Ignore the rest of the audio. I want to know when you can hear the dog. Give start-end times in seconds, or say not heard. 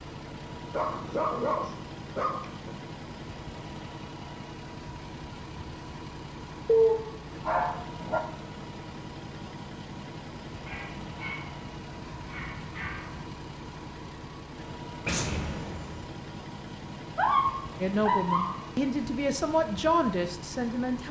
0.7-2.7, 6.7-8.2, 10.7-13.3, 17.1-18.6.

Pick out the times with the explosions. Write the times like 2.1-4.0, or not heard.
15.1-16.1.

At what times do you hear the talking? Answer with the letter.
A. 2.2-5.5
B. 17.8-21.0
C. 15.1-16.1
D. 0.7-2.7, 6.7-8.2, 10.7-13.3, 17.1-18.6
B.